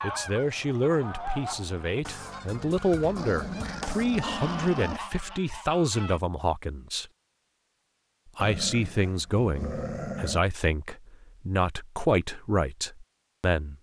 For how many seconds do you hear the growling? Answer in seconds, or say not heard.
4 s.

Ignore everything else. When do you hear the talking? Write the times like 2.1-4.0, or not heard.
0.0-7.0, 8.3-13.7.